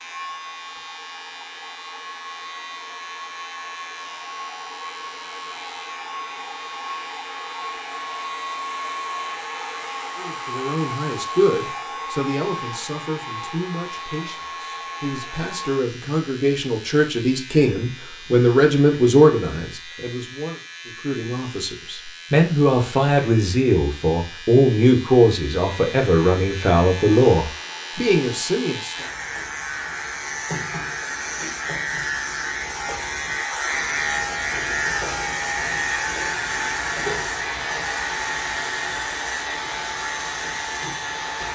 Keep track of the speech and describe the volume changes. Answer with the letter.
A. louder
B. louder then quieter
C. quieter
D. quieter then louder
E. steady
A.